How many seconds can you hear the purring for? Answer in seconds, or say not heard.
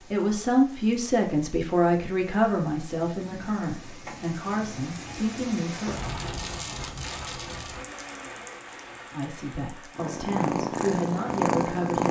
2 s.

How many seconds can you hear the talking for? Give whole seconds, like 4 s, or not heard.
9 s.